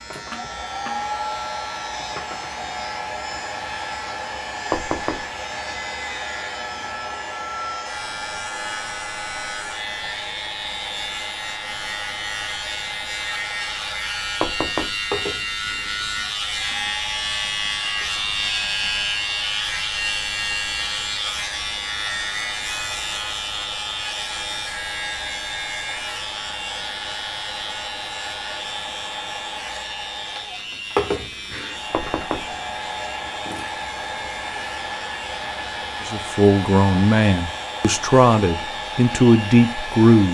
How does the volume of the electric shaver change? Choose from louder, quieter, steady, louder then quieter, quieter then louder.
louder then quieter.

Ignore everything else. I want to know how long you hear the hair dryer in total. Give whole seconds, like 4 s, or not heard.
40 s.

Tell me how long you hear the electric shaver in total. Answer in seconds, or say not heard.
40 s.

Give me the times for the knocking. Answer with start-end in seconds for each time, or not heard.
4.7-5.2, 14.4-15.0, 31.9-32.5.